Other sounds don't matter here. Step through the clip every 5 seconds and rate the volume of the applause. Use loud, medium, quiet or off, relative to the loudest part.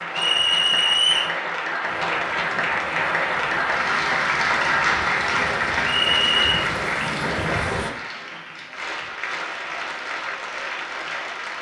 loud, loud, medium.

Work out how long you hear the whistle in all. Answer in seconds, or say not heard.
2 s.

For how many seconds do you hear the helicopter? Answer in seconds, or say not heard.
6 s.